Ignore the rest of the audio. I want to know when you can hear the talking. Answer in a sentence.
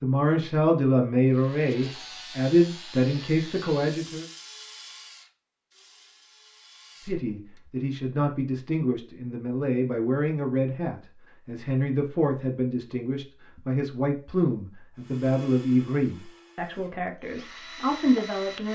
You can hear the talking from 0.0 to 4.2 s and from 7.0 to 18.7 s.